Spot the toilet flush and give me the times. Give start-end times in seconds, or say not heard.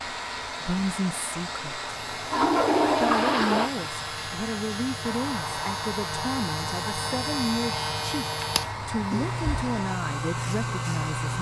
2.2-3.7.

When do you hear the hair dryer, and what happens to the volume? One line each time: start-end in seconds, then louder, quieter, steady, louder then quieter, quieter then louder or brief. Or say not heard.
0.0-11.3 steady.